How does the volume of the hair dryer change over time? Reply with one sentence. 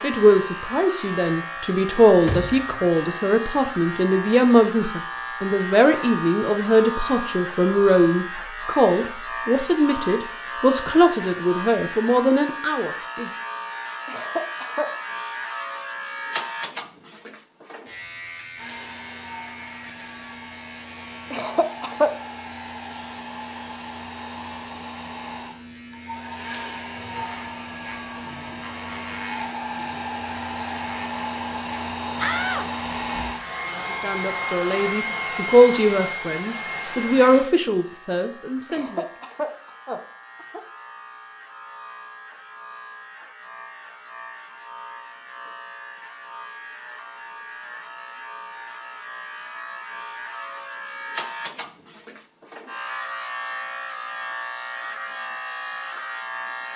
The loudness of the hair dryer goes up.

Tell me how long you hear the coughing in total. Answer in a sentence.
You can hear the coughing for 4 seconds altogether.